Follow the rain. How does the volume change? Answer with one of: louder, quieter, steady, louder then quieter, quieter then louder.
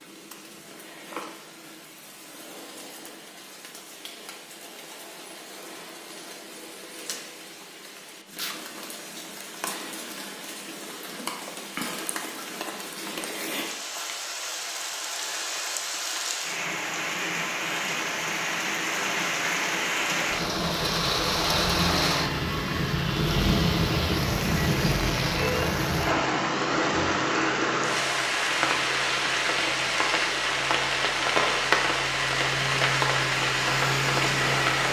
louder.